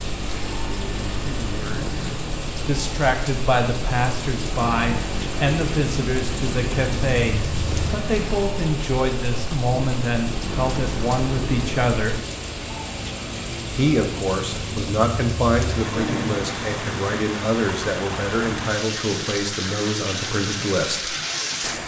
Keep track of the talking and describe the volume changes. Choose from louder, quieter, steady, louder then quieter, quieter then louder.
steady.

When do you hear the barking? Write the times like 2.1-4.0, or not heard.
not heard.